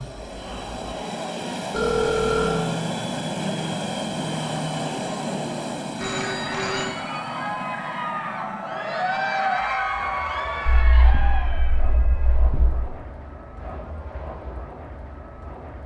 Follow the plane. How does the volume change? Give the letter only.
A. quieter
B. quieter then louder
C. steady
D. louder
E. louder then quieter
A.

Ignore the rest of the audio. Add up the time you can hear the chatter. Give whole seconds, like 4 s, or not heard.
12 s.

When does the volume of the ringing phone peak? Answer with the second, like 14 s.
2 s.